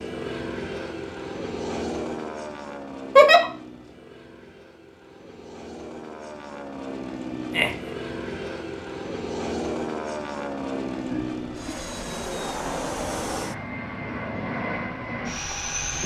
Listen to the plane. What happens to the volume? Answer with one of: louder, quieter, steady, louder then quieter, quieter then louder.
quieter then louder.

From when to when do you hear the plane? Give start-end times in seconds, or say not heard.
0.0-16.0.